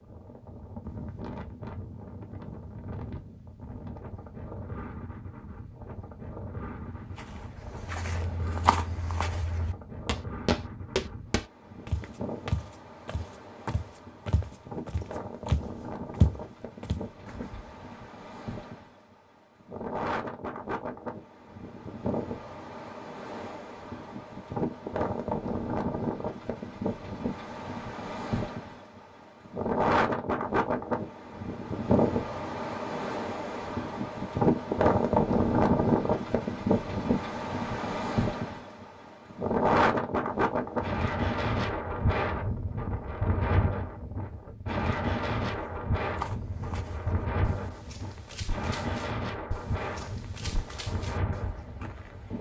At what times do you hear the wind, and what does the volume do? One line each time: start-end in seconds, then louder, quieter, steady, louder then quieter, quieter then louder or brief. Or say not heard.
0.0-52.3 louder then quieter.